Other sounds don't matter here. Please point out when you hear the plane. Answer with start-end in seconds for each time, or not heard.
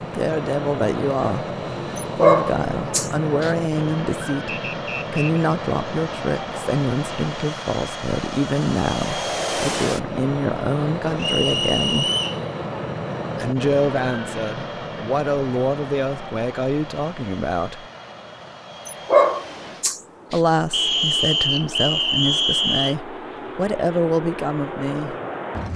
0.0-25.7.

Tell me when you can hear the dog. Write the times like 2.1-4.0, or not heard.
1.9-3.5, 18.9-20.4.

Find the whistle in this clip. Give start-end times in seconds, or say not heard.
4.5-5.5, 11.2-12.4, 20.7-22.9.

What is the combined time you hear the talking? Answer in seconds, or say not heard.
21 s.